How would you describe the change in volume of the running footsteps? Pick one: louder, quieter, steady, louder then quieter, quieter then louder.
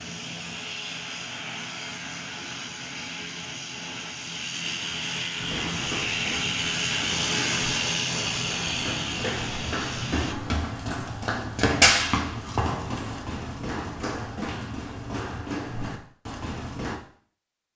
louder then quieter.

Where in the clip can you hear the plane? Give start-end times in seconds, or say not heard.
0.0-10.3.